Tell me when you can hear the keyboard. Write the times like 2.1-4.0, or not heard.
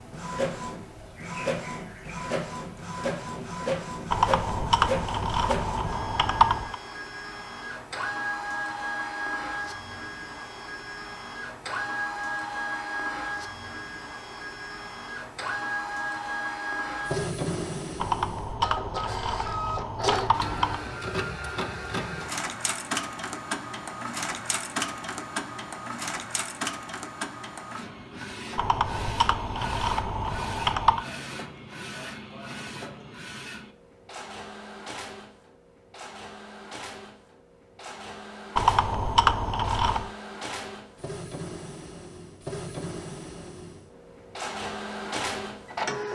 4.1-6.8, 18.0-20.9, 28.6-31.1, 38.5-40.1.